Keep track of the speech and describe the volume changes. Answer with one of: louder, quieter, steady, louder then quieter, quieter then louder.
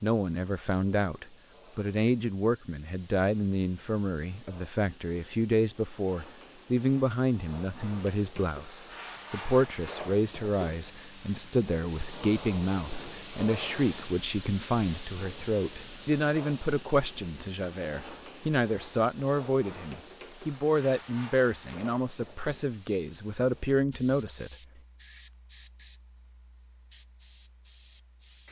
steady.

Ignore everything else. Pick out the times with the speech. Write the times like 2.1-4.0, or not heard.
0.0-24.6.